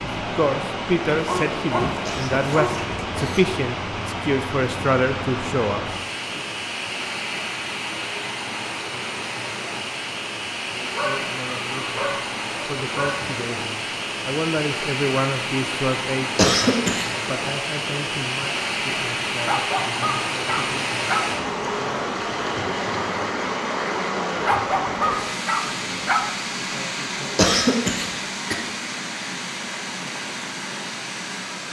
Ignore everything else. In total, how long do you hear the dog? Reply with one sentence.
The dog can be heard for 8 seconds in total.